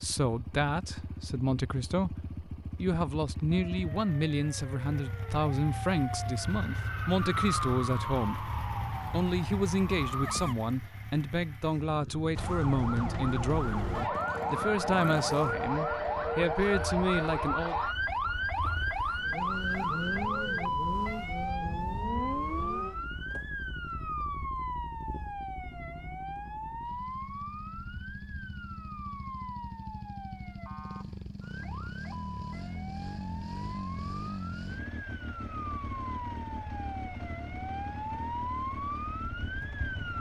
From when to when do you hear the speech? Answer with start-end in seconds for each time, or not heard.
0.0-17.8.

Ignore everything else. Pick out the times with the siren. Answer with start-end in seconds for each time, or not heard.
3.5-10.6, 12.3-40.1.